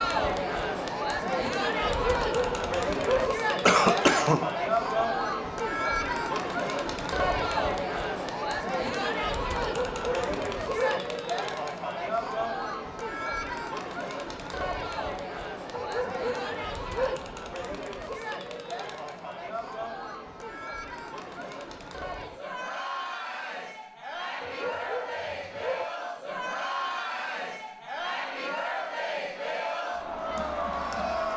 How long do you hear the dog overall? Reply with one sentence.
You can hear the dog for 6 seconds altogether.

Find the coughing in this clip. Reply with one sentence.
The coughing can be heard from 3.6 to 4.4 s.